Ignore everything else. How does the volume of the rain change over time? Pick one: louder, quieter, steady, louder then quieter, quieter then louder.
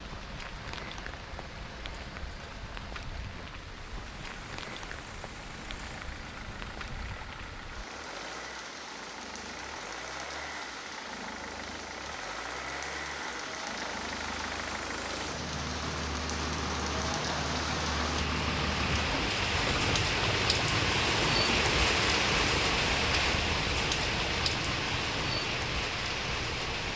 louder.